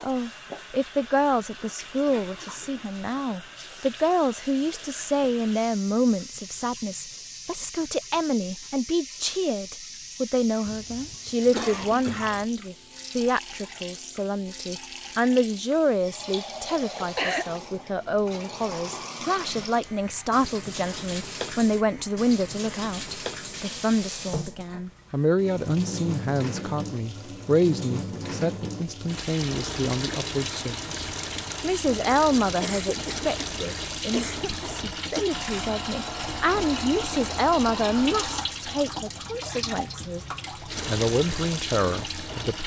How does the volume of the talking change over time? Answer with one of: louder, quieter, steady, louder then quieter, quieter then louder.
steady.